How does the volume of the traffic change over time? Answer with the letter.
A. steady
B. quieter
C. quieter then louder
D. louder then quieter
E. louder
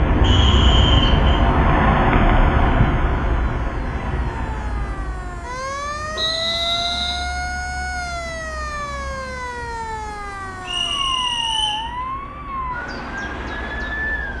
B.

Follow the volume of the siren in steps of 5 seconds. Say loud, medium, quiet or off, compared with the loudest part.
quiet, loud, loud.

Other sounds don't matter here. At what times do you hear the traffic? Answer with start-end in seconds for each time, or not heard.
0.0-14.3.